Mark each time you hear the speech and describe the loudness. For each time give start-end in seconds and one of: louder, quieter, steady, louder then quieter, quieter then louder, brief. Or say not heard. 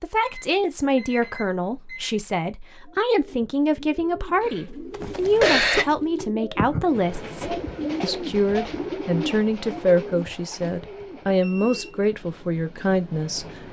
0.0-13.6 steady.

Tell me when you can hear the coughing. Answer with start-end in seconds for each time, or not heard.
4.4-6.2.